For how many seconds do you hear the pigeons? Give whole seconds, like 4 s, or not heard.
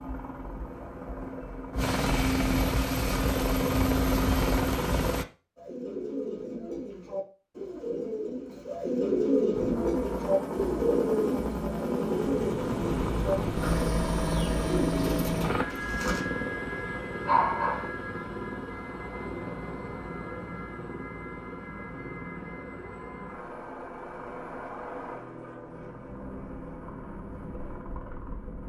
11 s.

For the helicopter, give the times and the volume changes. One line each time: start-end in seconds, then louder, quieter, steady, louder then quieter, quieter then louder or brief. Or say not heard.
0.0-5.2 louder
9.5-28.6 quieter.